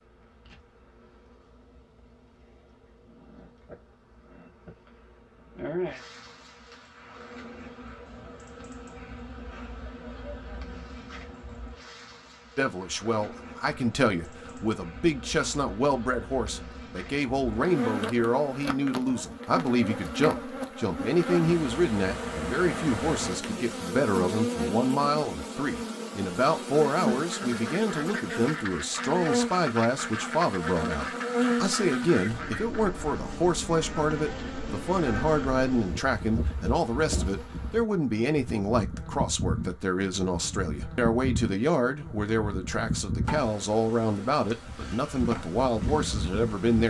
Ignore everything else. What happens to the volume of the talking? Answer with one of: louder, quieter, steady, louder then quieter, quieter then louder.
steady.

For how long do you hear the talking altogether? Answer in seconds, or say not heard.
34 s.